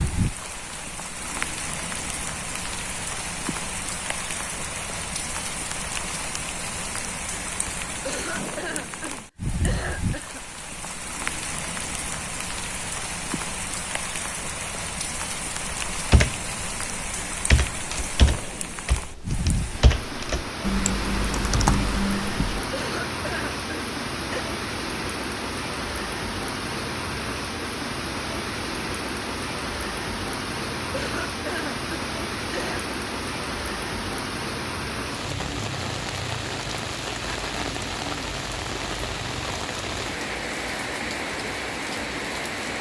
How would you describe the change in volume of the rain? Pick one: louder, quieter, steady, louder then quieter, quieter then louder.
steady.